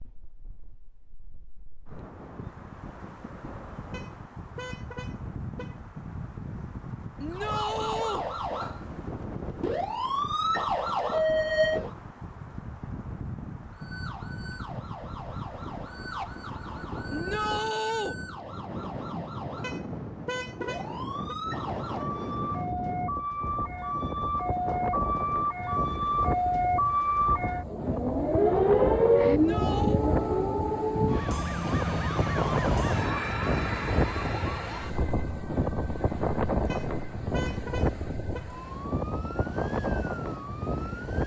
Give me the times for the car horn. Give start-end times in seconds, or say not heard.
3.9-5.8, 19.6-21.4, 36.6-38.5.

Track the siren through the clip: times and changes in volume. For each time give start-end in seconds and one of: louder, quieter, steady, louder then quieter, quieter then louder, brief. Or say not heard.
7.3-11.9 louder
13.7-41.2 louder then quieter.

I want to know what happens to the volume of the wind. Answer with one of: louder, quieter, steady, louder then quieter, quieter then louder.
louder.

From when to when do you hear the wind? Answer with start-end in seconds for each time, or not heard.
0.0-41.2.